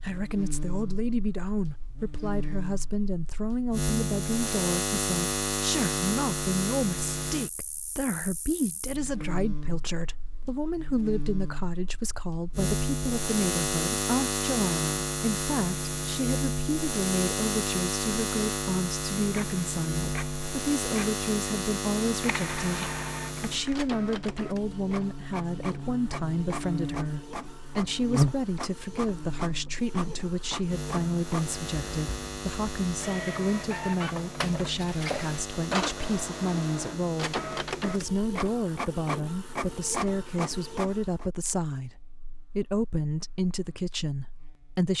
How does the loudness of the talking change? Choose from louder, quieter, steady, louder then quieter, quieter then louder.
steady.